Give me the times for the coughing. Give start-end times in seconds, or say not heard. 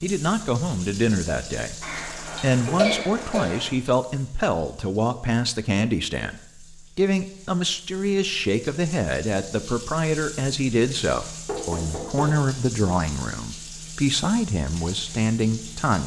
1.8-3.8.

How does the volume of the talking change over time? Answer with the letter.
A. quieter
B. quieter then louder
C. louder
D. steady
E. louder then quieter
D.